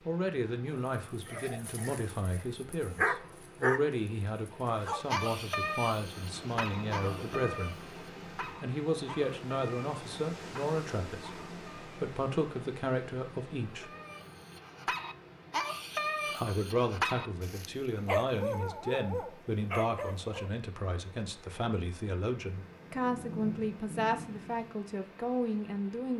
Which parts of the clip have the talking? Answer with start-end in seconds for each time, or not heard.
0.1-13.9, 16.4-26.1.